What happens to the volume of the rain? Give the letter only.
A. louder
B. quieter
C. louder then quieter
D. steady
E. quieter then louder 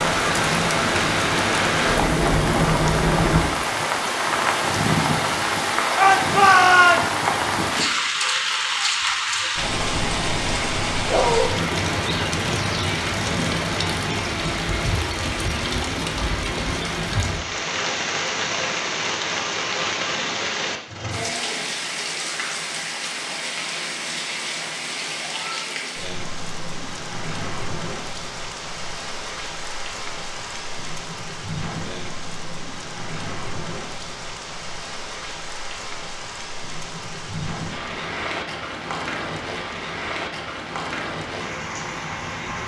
B.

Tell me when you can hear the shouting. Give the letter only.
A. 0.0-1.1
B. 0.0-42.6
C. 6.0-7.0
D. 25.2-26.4
C.